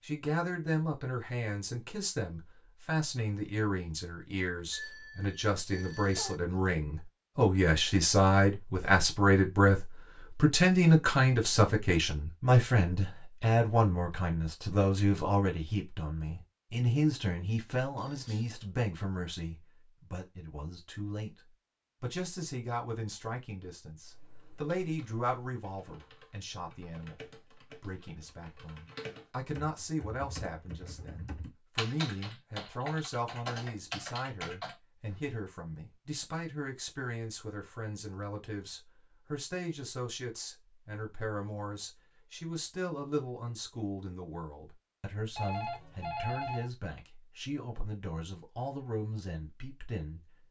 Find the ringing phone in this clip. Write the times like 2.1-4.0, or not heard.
4.7-6.3, 17.9-18.6, 45.4-46.7.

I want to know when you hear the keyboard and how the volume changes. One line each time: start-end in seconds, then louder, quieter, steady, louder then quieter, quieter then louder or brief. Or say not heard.
24.0-35.2 louder.